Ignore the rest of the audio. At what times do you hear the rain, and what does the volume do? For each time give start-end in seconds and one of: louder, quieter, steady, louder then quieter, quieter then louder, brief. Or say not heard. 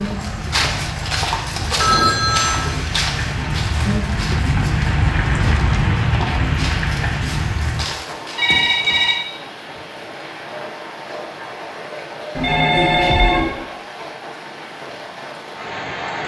0.0-16.2 louder then quieter.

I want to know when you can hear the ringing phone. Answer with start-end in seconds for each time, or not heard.
1.8-2.8, 8.3-9.2, 12.3-13.6.